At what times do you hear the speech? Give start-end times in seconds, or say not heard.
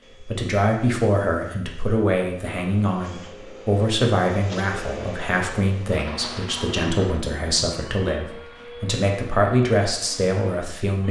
0.2-11.0.